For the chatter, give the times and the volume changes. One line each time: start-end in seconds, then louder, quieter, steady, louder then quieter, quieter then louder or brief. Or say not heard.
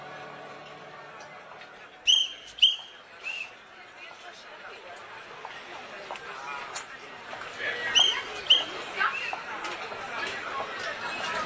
0.0-11.4 louder.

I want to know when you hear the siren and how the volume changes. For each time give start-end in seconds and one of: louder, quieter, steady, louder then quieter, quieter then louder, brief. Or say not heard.
not heard.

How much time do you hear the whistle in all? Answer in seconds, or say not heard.
3 s.